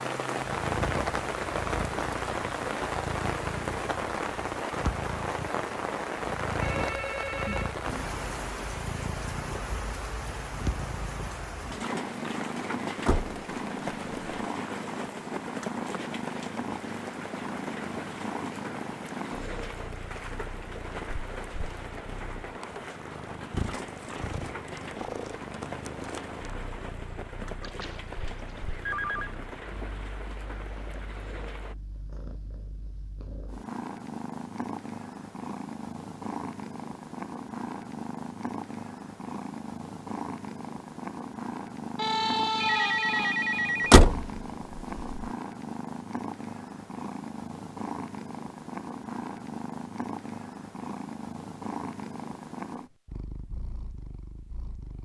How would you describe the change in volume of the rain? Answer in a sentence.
The loudness of the rain goes down.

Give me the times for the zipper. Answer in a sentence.
The zipper can't be heard in this clip.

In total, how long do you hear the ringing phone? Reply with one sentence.
The ringing phone can be heard for 5 seconds in total.